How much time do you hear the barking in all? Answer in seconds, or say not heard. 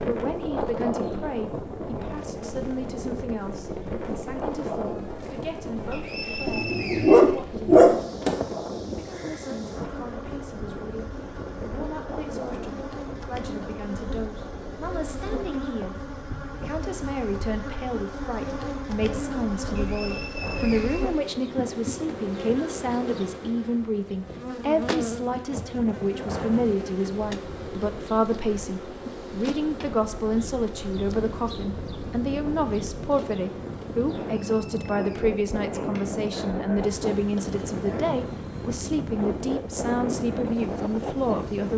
4 s.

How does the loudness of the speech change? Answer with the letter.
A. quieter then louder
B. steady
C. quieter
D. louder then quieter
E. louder
E.